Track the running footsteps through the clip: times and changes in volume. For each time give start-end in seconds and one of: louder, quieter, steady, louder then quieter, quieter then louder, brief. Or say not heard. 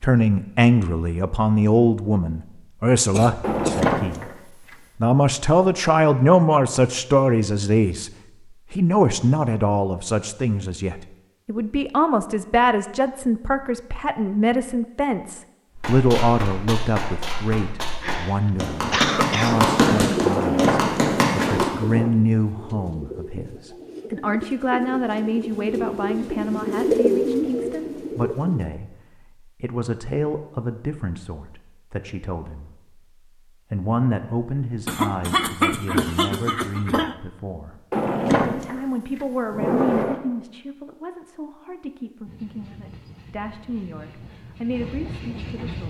15.7-21.7 louder.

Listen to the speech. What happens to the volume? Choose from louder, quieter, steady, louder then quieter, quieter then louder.
quieter.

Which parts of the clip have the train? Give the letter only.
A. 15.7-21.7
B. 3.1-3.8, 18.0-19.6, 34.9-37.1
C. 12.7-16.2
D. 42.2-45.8
D.